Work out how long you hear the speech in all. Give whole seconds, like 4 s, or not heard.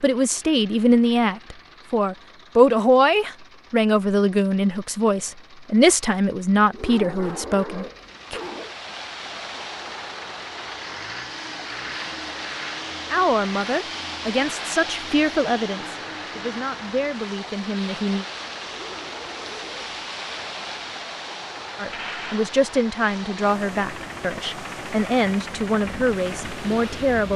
19 s.